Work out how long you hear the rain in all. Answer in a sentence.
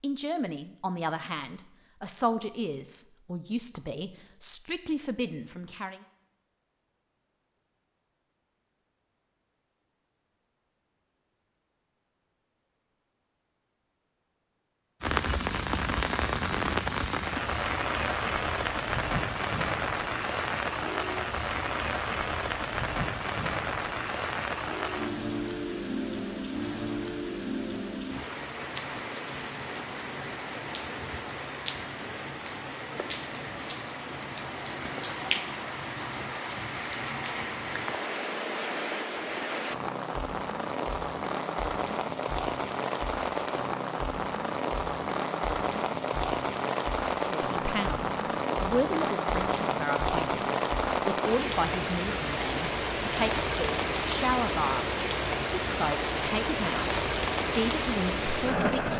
The rain can be heard for 44 seconds in total.